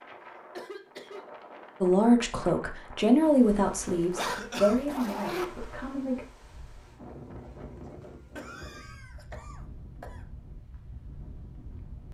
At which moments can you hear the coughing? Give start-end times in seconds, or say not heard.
0.1-1.3, 4.2-4.8, 8.3-10.2.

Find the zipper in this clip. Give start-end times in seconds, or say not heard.
3.8-5.5.